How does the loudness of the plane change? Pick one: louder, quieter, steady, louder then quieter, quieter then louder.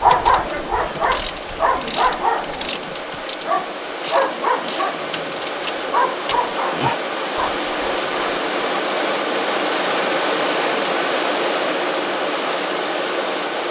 louder.